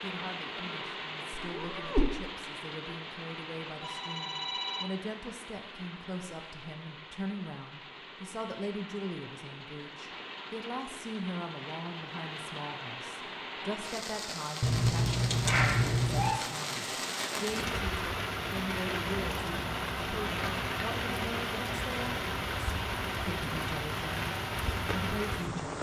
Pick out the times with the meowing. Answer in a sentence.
The meowing can be heard from 1.5 to 2.1 s and from 14.6 to 16.4 s.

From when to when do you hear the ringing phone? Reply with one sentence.
The ringing phone can be heard from 3.8 to 5.0 s.